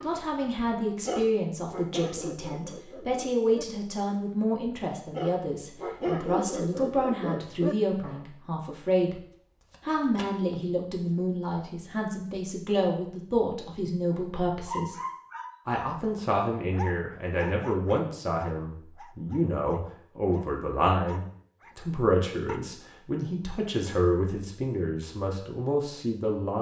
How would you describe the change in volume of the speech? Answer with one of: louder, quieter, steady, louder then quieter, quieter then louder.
steady.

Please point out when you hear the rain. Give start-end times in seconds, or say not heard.
not heard.